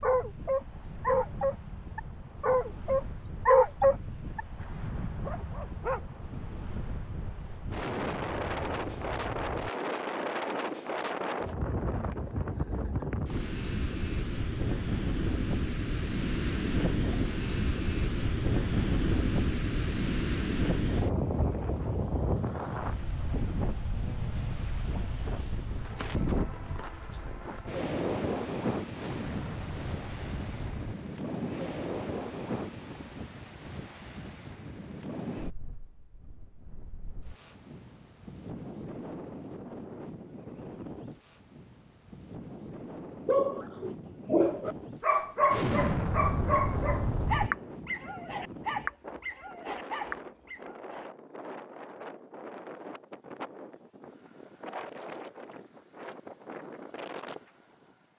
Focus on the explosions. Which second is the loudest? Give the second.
46 s.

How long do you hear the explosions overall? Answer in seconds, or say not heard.
6 s.